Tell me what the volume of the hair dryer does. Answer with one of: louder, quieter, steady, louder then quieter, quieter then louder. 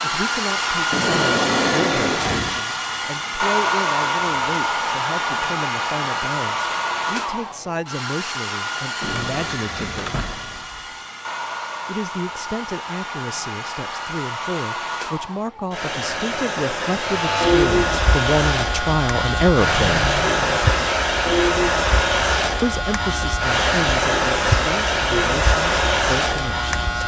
quieter then louder.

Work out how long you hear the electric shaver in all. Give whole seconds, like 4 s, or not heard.
10 s.